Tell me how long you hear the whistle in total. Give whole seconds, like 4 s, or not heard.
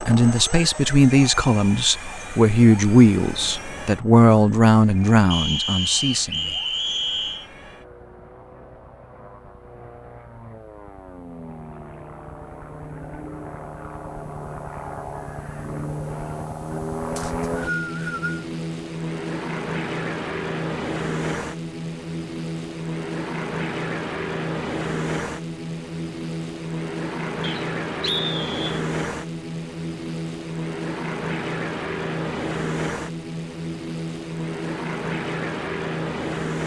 5 s.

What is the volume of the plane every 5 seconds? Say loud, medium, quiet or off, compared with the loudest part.
medium, quiet, medium, loud, loud, loud, loud, loud.